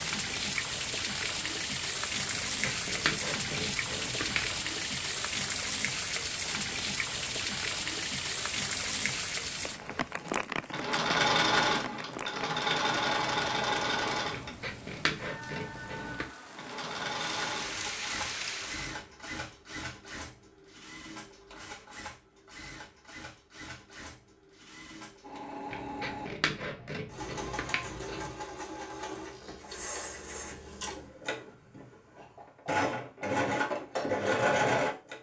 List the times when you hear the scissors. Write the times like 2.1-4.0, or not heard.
2.3-4.6, 14.3-16.2, 25.7-28.4.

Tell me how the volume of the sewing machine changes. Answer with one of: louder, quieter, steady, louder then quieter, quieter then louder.
quieter then louder.